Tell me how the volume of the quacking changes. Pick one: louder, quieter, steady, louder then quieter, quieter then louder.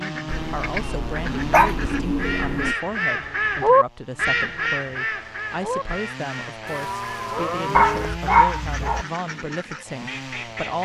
louder then quieter.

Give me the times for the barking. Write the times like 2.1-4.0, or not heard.
0.2-2.8, 7.7-9.1.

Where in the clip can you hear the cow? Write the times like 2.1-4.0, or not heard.
1.2-2.8, 6.7-8.2.